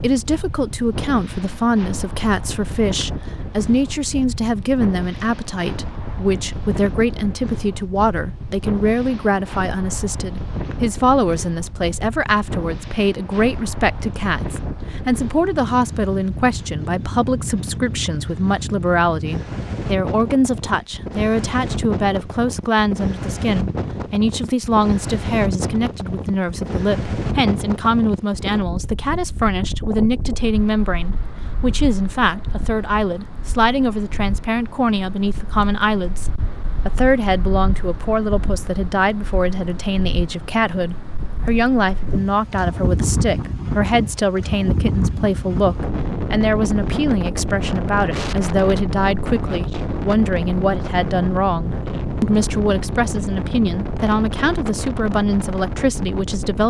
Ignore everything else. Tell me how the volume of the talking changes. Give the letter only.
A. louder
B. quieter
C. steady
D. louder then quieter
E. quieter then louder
C.